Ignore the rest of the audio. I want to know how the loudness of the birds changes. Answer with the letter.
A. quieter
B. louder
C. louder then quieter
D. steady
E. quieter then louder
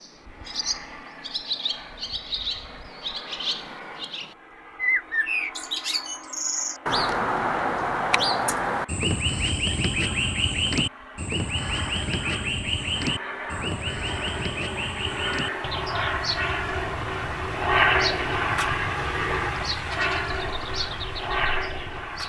C.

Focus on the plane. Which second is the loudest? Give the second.
18 s.